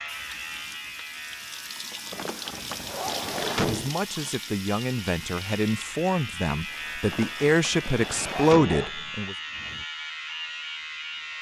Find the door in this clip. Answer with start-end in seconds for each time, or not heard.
2.1-3.9, 7.0-8.8.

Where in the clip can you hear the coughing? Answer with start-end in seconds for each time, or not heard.
not heard.